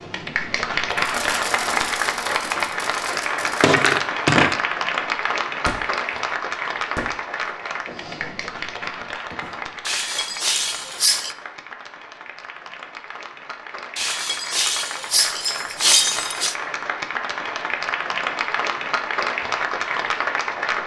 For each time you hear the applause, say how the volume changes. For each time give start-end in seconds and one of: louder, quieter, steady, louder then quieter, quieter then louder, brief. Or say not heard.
0.0-20.8 quieter then louder.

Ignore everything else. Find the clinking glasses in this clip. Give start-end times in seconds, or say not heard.
3.4-4.5, 9.8-11.3, 13.9-16.6.